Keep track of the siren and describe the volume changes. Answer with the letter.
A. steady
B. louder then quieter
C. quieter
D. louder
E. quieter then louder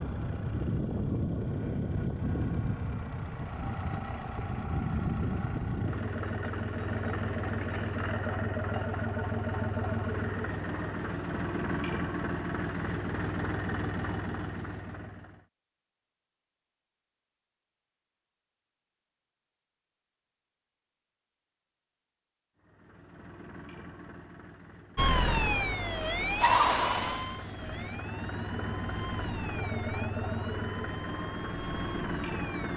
C.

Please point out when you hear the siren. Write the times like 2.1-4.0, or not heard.
24.9-32.7.